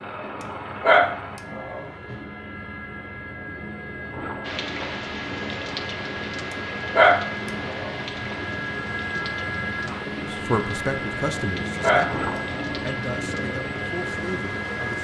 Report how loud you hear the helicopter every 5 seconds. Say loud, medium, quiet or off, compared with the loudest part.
medium, loud, loud.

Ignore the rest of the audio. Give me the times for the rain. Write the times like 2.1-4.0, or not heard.
4.4-14.9.